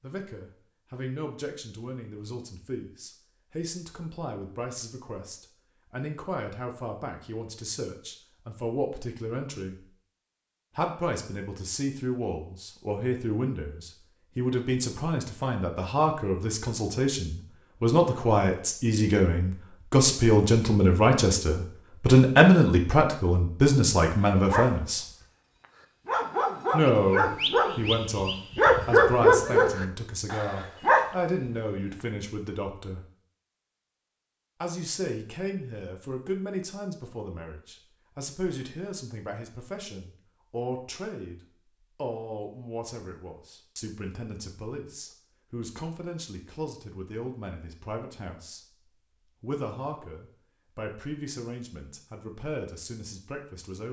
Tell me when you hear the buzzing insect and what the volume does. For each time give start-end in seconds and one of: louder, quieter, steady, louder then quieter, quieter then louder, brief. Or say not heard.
not heard.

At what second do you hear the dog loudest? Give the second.
29 s.